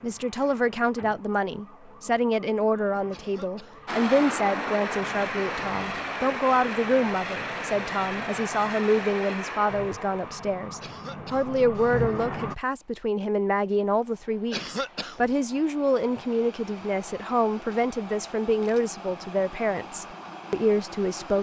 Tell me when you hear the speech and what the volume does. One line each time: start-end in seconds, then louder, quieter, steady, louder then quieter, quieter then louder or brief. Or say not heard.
0.0-21.3 steady.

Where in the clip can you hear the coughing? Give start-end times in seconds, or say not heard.
3.1-3.9, 10.8-11.6, 14.5-15.3.